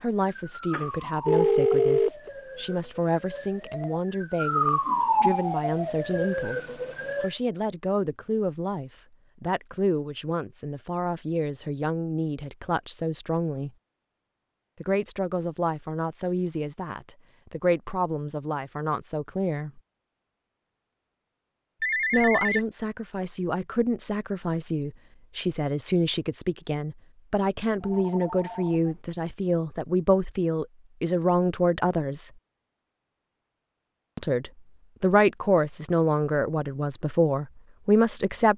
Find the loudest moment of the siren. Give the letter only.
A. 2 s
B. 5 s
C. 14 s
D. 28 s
B.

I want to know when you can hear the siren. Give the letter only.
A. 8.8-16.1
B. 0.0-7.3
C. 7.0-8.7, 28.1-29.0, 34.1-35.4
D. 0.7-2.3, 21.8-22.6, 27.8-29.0
B.